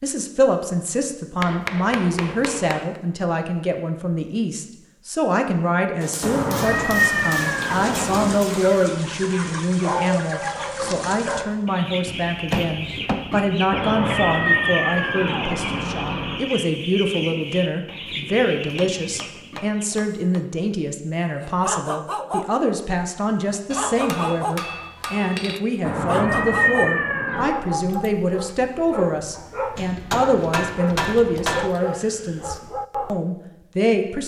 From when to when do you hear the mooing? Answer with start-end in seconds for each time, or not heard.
not heard.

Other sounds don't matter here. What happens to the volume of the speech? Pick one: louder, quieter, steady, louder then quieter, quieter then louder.
steady.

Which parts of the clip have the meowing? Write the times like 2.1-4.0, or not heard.
6.2-8.3, 13.7-16.4, 25.8-27.5.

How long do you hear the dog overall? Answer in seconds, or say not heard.
10 s.